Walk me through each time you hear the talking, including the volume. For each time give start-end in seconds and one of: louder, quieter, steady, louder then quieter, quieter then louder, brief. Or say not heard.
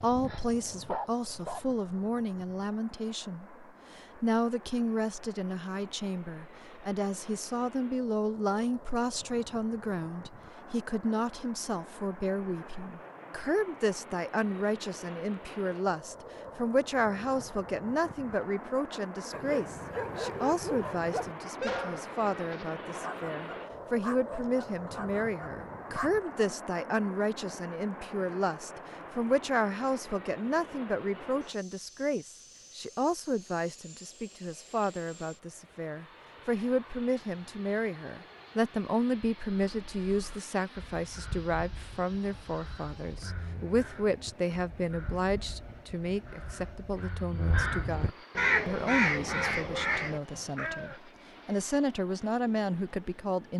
0.0-53.5 steady.